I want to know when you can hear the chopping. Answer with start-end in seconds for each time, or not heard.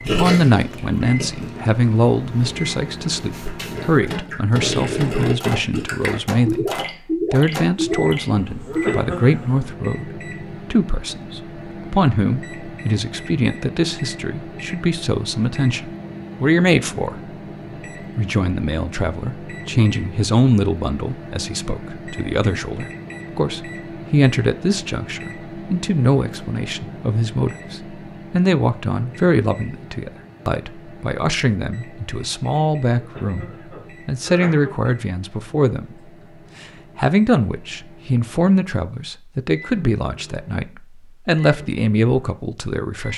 not heard.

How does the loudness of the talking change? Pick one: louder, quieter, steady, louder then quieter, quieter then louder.
steady.